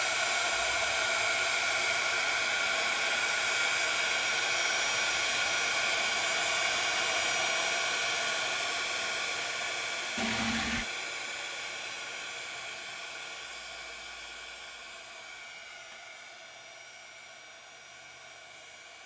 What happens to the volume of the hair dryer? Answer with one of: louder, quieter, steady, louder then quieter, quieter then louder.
quieter.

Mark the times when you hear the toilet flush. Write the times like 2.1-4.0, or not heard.
10.2-10.8.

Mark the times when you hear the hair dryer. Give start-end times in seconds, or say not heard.
0.0-19.0.